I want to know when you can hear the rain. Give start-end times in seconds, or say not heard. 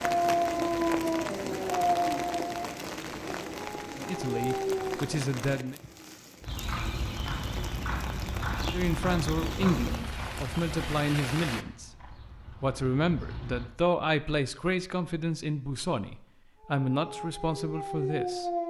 0.0-11.7.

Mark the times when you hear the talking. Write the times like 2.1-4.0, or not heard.
4.0-5.8, 8.7-18.5.